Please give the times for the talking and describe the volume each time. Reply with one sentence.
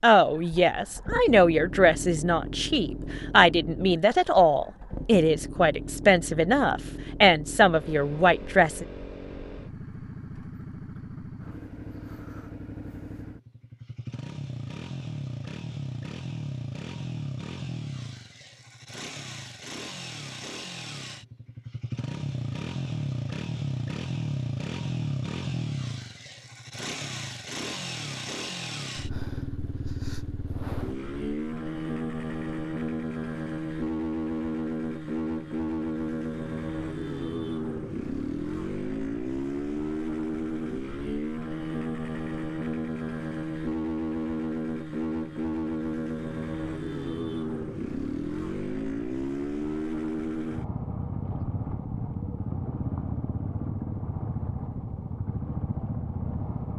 You can hear the talking from 0.0 to 8.8 s, at a steady volume.